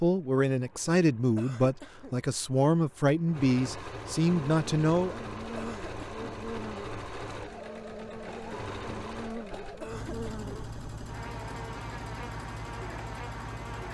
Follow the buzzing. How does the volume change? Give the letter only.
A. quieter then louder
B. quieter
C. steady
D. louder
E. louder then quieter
C.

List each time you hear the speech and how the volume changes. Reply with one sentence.
You can hear the speech from 0.0 to 5.2 s, at a steady volume.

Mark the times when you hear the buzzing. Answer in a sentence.
The buzzing can be heard from 4.3 to 13.8 s.